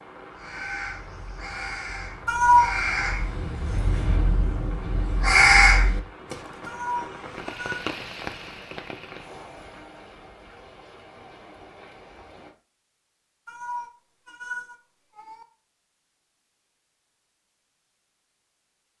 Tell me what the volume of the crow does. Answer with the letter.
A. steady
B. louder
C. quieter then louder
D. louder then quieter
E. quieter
B.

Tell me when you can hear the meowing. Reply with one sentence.
You can hear the meowing from 2.2 to 2.7 s, from 6.7 to 7.8 s and from 13.4 to 15.4 s.